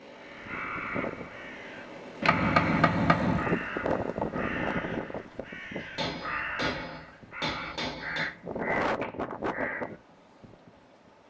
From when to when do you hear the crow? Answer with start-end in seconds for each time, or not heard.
0.1-9.9.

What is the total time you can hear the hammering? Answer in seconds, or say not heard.
4 s.